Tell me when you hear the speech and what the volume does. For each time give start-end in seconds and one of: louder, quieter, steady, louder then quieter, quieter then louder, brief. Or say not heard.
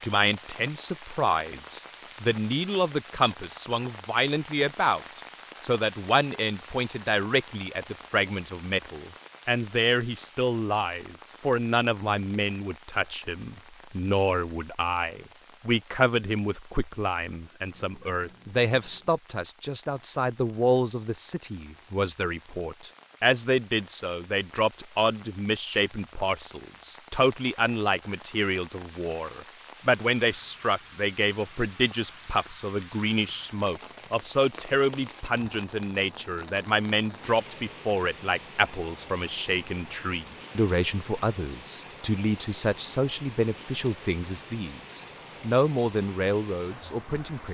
0.0-47.4 steady.